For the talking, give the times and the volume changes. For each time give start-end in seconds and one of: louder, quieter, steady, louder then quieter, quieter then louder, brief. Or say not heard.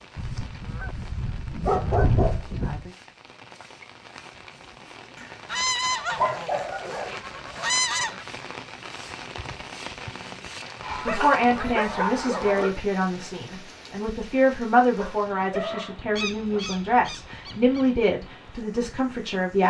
10.9-19.6 steady.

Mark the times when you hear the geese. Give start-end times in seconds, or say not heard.
0.1-2.5, 5.5-8.2, 10.8-12.6, 16.1-17.9.